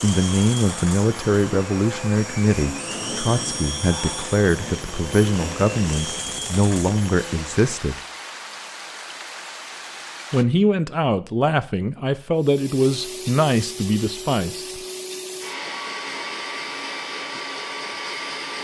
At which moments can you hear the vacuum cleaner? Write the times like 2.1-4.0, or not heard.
0.0-7.7, 12.3-18.5.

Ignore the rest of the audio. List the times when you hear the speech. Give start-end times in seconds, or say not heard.
0.0-8.0, 10.3-14.8.